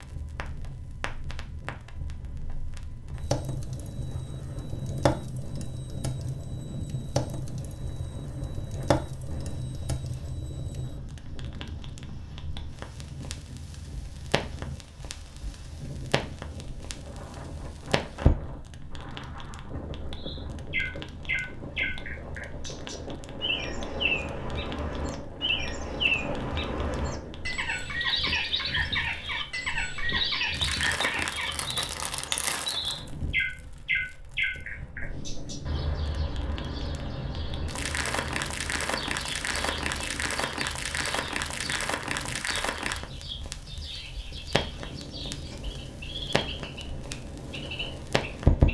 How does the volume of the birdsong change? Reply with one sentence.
The loudness of the birdsong goes down.